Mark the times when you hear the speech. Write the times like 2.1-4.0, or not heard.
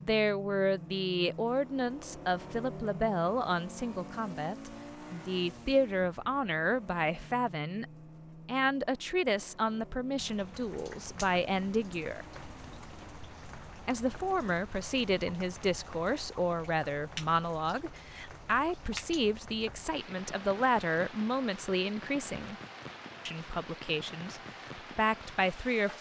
0.0-7.8, 8.4-12.2, 13.8-22.6, 23.2-25.9.